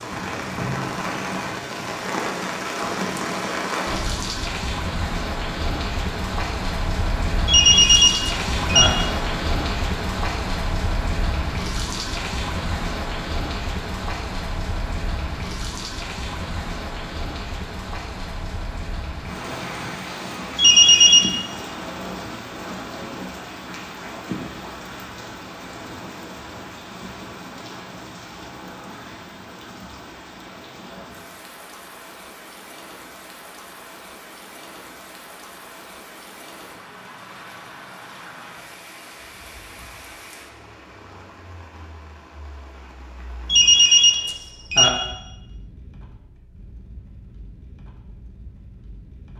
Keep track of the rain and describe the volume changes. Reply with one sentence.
The loudness of the rain goes down.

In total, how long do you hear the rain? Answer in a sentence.
The rain can be heard for 49 seconds in total.